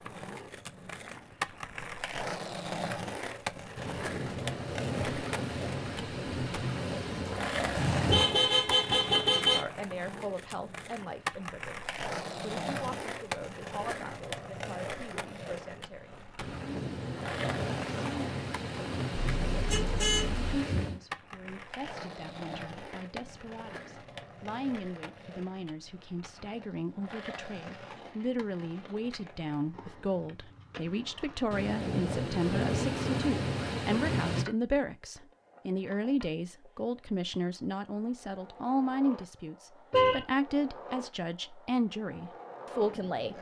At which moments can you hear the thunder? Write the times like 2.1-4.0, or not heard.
3.8-8.3, 16.4-21.0, 31.5-34.5.